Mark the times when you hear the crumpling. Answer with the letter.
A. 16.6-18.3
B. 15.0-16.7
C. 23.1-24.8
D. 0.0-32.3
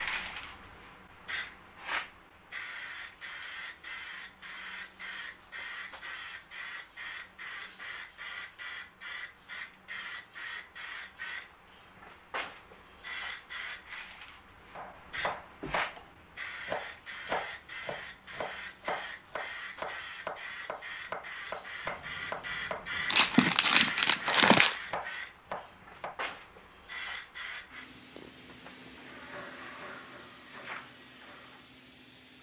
C.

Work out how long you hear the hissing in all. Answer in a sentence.
The hissing can be heard for 32 seconds in total.